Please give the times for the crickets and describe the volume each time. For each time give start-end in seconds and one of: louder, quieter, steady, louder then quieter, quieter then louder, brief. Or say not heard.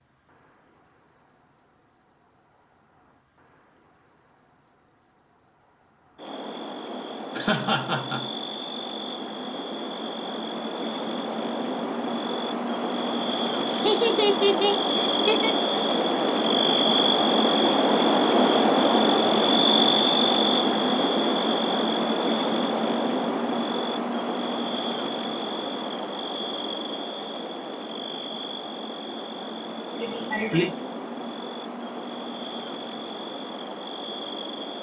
0.0-34.7 louder then quieter.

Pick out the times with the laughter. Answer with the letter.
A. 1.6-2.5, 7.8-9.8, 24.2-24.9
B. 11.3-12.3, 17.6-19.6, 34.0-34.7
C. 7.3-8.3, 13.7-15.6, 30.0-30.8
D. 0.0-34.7
C.